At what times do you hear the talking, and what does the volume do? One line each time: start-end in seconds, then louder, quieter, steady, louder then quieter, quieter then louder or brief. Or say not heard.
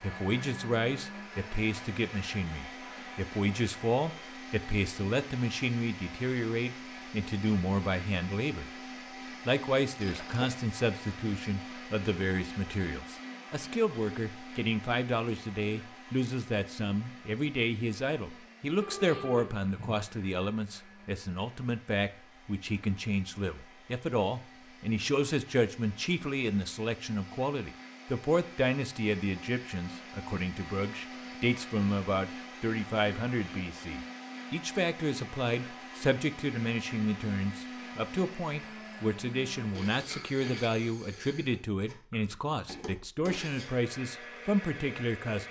0.0-8.7 steady
9.4-45.4 steady.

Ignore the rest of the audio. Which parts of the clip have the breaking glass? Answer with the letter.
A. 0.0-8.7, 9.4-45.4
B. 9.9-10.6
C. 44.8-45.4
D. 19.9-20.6
B.